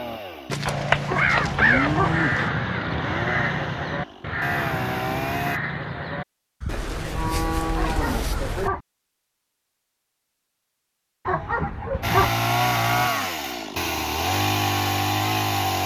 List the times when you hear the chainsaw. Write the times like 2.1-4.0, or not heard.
0.0-5.6, 12.0-15.8.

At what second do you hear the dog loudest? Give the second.
12 s.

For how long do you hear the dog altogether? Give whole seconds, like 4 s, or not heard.
3 s.